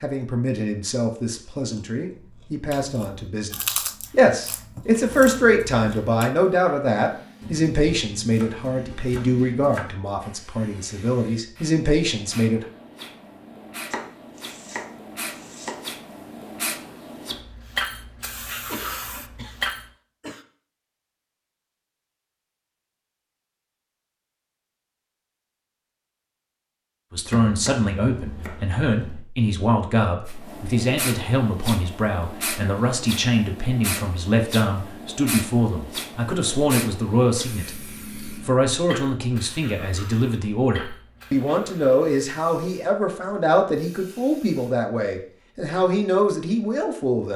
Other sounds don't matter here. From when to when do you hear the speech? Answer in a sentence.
The speech can be heard from 0.0 to 12.7 s and from 27.1 to 47.3 s.